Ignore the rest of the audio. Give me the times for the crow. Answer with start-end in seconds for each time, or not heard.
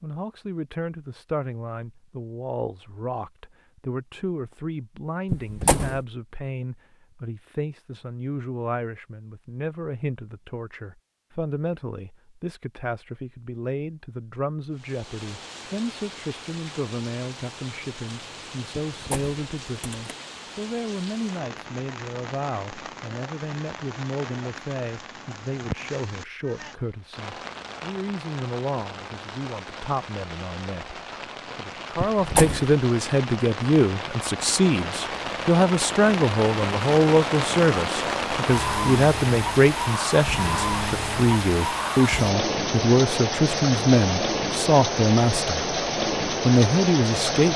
not heard.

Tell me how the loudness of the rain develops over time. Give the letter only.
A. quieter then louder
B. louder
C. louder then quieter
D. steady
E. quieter
B.